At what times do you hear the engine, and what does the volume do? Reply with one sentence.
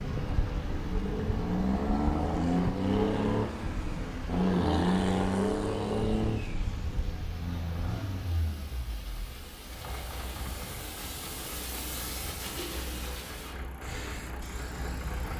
The engine can be heard from 0.0 to 15.3 s, getting quieter.